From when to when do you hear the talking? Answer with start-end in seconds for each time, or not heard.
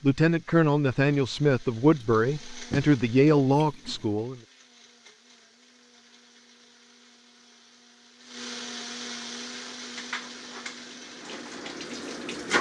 0.0-4.4.